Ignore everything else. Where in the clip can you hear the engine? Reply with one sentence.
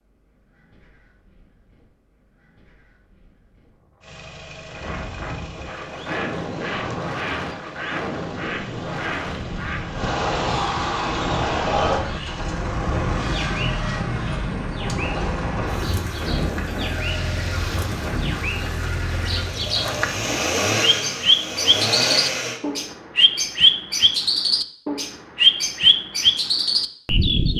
The engine can be heard from 4.0 to 22.6 s.